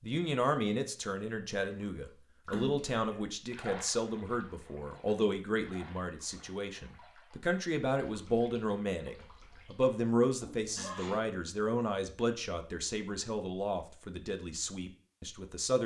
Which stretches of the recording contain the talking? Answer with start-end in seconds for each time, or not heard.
0.0-15.8.